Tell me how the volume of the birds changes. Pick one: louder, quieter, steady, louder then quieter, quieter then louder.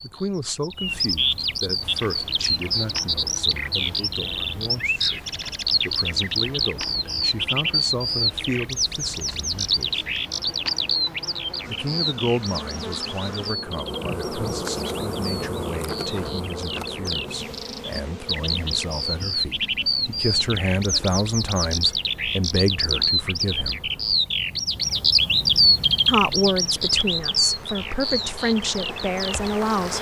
quieter then louder.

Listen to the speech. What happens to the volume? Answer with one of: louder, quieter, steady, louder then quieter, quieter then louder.
louder.